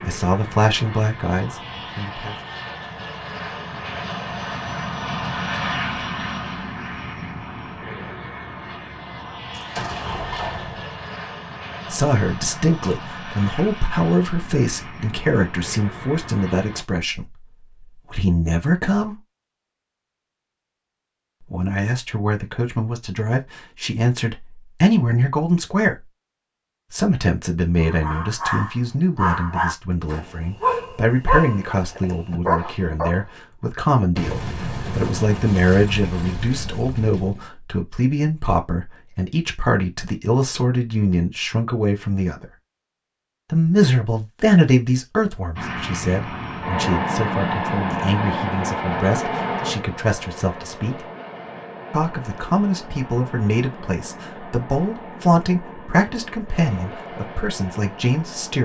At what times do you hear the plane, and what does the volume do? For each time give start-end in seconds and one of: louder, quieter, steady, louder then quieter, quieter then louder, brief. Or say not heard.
0.0-16.9 louder then quieter
45.5-58.5 quieter.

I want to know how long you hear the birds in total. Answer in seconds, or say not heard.
not heard.